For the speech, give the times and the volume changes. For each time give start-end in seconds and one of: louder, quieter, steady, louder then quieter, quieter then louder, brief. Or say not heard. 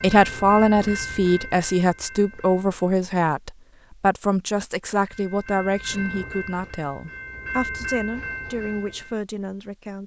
0.0-10.0 quieter.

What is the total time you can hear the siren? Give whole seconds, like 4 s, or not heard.
not heard.